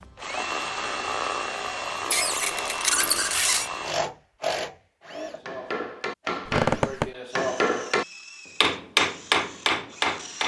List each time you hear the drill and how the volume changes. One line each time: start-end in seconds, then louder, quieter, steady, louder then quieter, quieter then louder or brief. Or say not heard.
0.0-10.4 quieter.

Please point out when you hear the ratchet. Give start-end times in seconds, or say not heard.
not heard.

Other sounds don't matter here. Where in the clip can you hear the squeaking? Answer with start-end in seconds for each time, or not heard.
2.1-3.7, 6.5-7.1.